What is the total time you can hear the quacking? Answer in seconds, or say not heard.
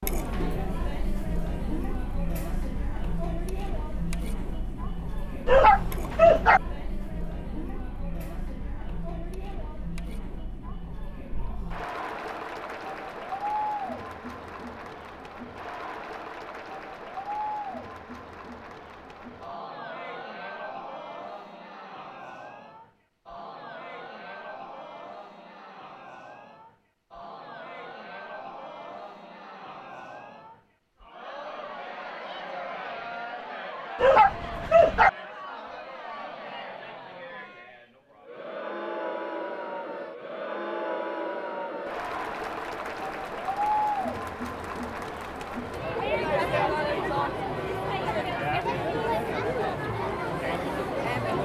not heard.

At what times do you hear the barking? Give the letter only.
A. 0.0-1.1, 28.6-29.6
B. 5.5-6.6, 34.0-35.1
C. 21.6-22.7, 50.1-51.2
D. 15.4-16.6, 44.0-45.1
B.